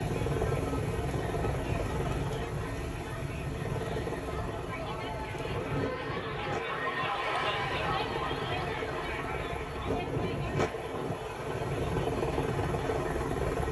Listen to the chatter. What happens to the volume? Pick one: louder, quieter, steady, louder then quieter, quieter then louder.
louder then quieter.